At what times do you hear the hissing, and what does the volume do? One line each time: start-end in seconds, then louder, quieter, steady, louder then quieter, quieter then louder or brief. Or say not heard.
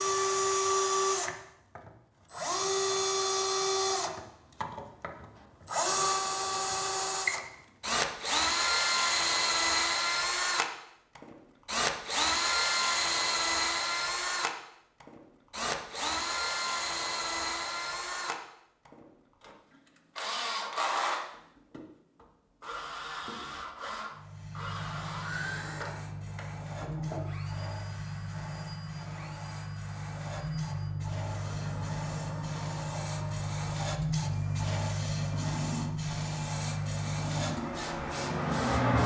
24.1-39.0 louder.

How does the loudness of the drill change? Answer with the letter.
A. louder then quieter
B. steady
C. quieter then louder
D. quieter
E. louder
D.